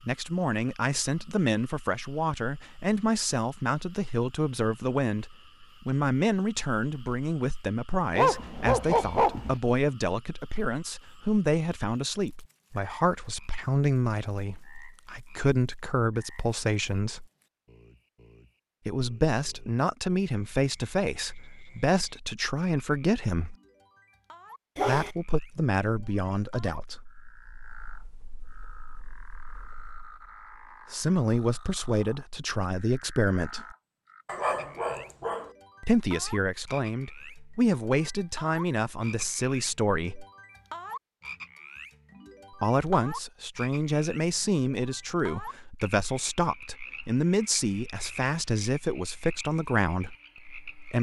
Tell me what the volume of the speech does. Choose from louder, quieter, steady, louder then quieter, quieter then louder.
steady.